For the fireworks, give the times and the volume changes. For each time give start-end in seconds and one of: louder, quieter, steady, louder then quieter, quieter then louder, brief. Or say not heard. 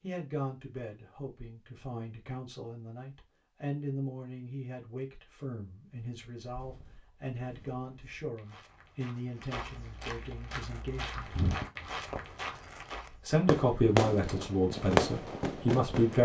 10.5-16.2 louder.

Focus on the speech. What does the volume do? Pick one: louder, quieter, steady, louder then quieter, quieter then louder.
louder.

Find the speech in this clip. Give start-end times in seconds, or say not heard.
0.0-11.3, 13.1-16.2.